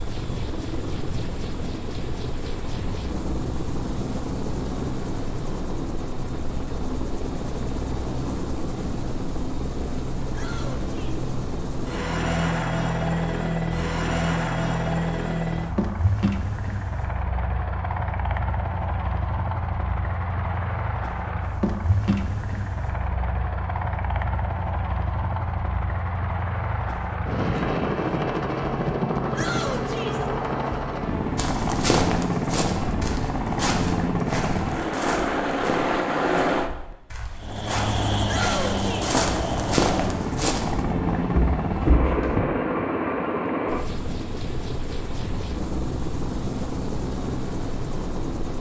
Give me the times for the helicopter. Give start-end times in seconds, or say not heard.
0.0-48.5.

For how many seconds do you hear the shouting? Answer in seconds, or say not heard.
3 s.